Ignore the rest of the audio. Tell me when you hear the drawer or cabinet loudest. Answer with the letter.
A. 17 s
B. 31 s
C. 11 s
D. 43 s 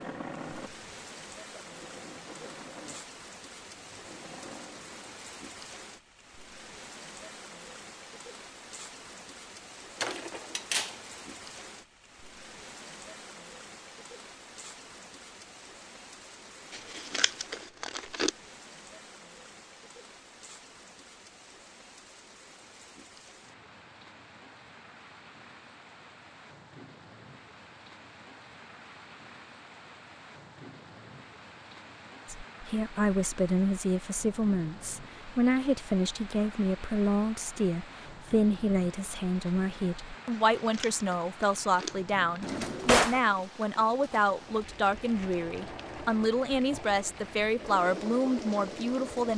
D.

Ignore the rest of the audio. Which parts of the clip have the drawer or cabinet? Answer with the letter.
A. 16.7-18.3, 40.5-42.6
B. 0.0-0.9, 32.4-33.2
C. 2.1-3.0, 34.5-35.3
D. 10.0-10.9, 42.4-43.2
D.